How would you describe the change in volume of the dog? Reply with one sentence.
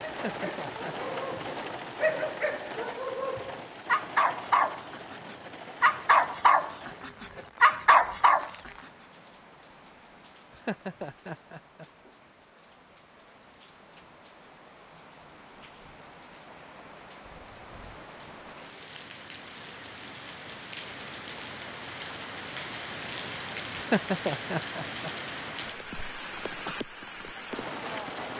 The loudness of the dog goes up.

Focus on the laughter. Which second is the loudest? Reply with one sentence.
The loudest moment of the laughter is at 24 seconds.